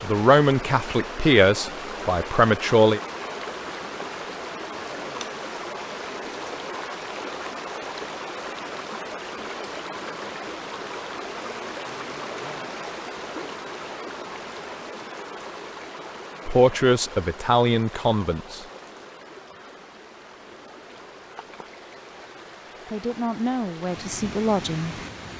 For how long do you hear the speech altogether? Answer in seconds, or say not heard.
7 s.